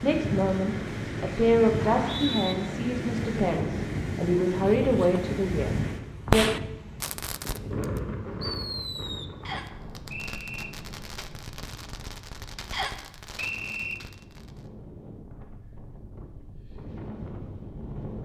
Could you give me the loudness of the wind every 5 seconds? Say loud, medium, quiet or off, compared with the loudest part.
loud, loud, quiet, medium.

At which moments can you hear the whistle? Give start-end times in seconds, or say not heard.
1.9-2.5, 9.4-10.7, 12.7-13.9.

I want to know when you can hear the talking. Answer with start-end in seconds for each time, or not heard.
0.0-6.5.